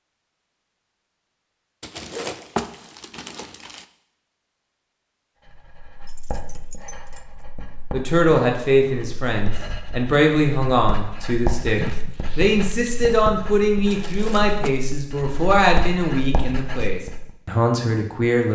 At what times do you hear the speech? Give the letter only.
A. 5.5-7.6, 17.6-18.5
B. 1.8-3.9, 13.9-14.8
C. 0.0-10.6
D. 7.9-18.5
D.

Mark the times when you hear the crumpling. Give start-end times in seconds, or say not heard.
1.8-3.9, 13.9-14.8.